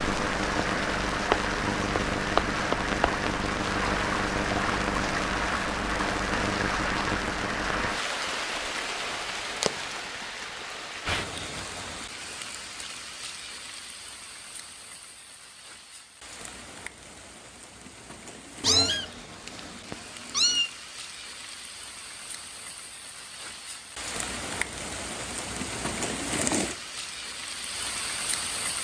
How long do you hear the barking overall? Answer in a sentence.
You can't hear the barking here.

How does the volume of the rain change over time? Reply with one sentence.
The volume of the rain goes down, then up.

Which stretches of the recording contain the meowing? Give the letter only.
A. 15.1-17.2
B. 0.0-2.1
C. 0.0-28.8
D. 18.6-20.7
D.